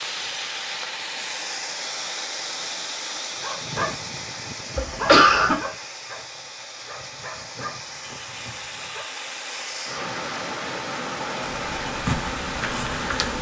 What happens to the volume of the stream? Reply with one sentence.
The volume of the stream goes down, then up.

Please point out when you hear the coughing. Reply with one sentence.
The coughing can be heard from 4.8 to 5.6 s.